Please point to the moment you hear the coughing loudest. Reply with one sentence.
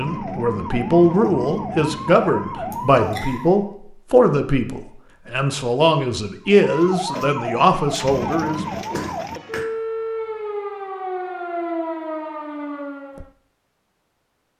The volume of the coughing peaks at 9 seconds.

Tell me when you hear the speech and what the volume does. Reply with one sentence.
You can hear the speech from 0.0 to 8.8 s, at a steady volume.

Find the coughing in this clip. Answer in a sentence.
You can hear the coughing from 2.7 to 3.4 s and from 8.9 to 9.7 s.